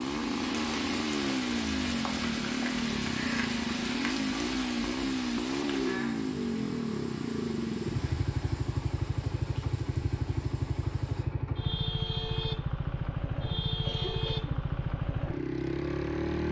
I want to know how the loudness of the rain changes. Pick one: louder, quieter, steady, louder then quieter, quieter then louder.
quieter.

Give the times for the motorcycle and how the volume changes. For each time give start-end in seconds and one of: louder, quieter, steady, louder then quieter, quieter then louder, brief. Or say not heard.
0.0-16.4 steady.